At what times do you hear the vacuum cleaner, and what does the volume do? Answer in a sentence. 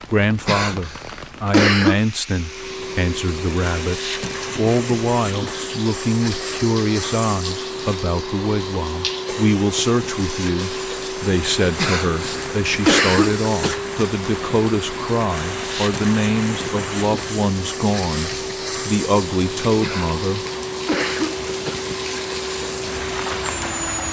You can hear the vacuum cleaner from 2.3 to 24.0 s, at a steady volume.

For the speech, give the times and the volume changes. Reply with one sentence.
The speech can be heard from 0.0 to 20.4 s, at a steady volume.